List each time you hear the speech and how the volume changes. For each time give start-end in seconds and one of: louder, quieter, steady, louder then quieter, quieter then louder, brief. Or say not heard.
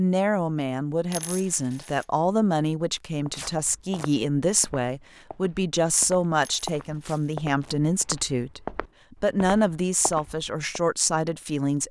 0.0-11.8 steady.